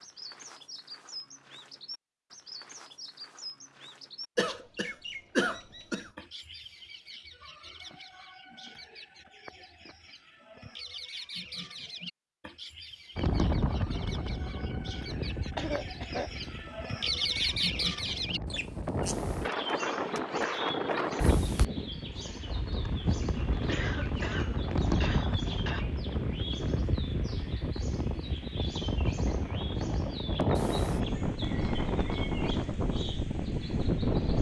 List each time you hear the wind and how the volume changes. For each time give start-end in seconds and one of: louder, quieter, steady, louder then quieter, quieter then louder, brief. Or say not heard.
13.2-34.3 louder.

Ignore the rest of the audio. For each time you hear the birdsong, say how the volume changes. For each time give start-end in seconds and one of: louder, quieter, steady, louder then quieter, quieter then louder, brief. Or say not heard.
0.0-34.3 louder then quieter.